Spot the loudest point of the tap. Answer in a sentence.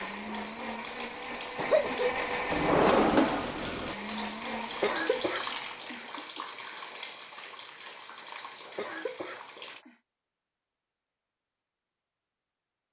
The loudest moment of the tap is at 5 seconds.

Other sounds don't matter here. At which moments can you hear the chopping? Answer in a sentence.
You can't hear the chopping here.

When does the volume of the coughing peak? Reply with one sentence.
The loudest moment of the coughing is at 2 seconds.